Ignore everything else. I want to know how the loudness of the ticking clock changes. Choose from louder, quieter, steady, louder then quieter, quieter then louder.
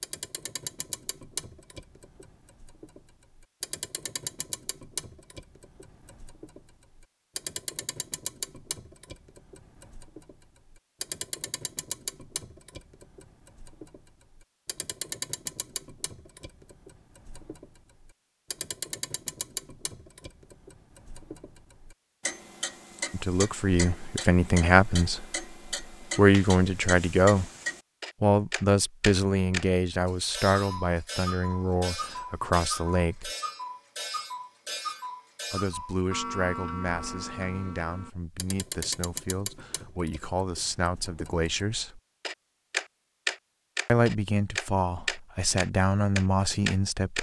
louder.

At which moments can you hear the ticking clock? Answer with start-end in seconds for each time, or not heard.
0.0-47.1.